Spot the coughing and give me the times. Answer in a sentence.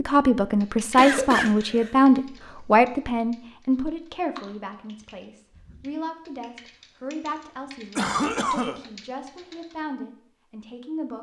The coughing can be heard from 0.9 to 1.9 s and from 8.0 to 8.8 s.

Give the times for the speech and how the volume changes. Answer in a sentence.
You can hear the speech from 0.0 to 11.1 s, getting quieter.